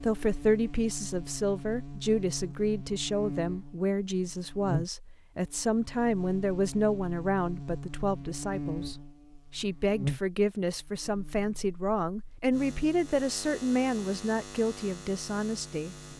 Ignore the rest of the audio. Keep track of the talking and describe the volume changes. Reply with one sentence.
The volume of the talking stays about the same.